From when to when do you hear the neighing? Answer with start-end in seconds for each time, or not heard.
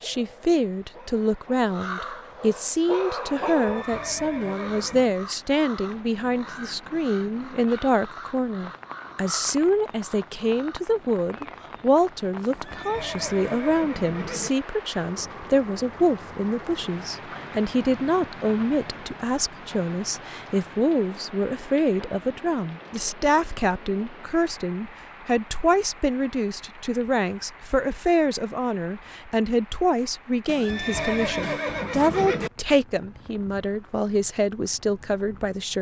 3.5-5.2, 12.5-14.5, 30.4-32.5.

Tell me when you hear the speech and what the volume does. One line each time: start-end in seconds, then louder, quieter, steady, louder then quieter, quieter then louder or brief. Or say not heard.
0.0-35.7 steady.